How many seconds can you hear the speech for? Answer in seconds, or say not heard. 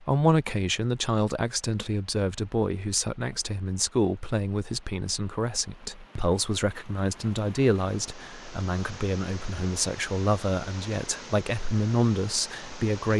13 s.